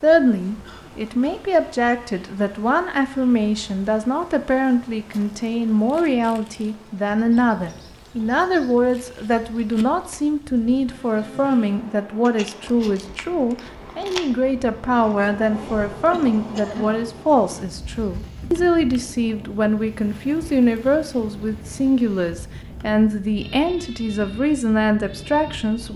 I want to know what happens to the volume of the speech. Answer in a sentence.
The volume of the speech stays about the same.